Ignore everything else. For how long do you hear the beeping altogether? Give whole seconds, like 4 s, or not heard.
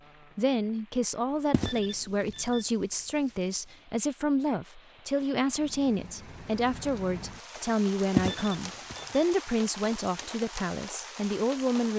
2 s.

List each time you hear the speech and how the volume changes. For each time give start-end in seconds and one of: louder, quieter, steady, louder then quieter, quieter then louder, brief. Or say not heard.
0.3-11.9 steady.